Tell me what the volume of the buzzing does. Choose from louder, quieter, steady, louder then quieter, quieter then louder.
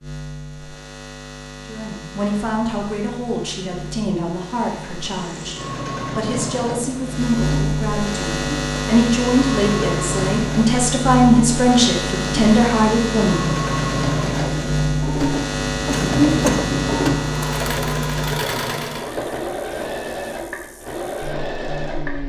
louder then quieter.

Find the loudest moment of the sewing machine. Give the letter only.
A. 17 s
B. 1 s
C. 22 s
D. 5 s
A.